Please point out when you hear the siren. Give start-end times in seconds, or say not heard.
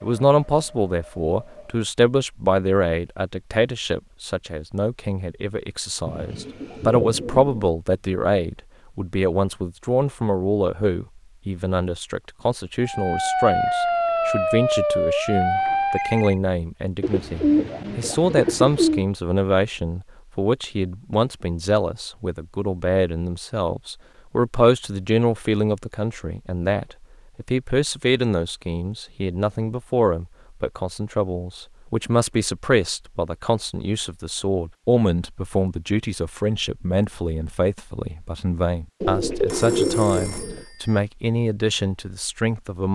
12.8-16.4.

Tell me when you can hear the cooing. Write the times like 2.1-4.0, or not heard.
6.0-7.7, 17.0-19.1, 39.0-40.6.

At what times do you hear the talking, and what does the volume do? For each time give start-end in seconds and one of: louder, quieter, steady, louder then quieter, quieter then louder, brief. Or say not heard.
0.0-42.9 steady.